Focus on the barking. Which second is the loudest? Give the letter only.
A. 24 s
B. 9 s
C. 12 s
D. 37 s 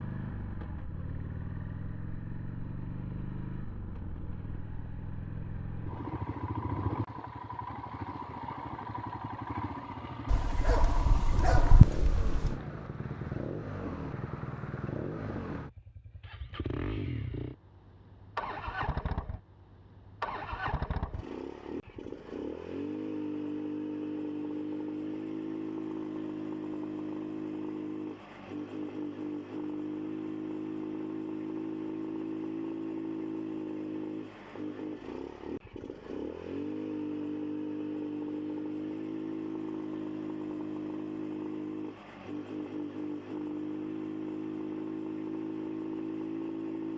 C.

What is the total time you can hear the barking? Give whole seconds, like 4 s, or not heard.
2 s.